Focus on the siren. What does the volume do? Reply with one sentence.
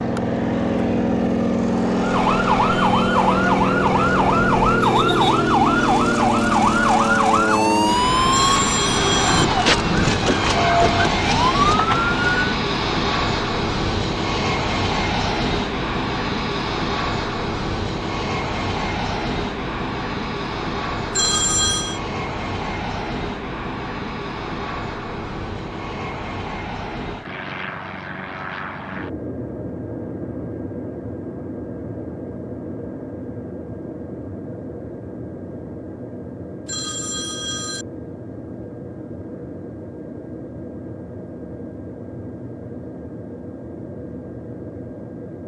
The loudness of the siren stays about the same.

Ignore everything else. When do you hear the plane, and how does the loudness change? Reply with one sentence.
You can hear the plane from 0.0 to 45.4 s, getting quieter.